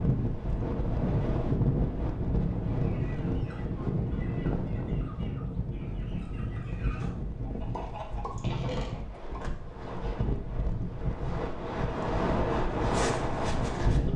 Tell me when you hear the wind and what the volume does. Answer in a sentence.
You can hear the wind from 0.0 to 14.1 s, getting quieter then louder.